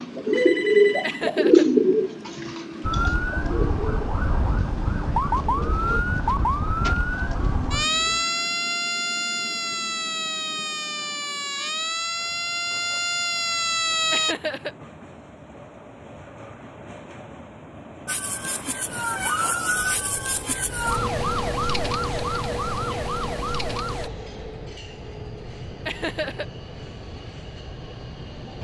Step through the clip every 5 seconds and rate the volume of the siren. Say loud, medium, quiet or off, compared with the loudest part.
loud, loud, loud, loud, loud, off.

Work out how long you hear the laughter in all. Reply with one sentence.
The laughter can be heard for 2 seconds in total.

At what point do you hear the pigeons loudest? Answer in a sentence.
The volume of the pigeons peaks at 2 seconds.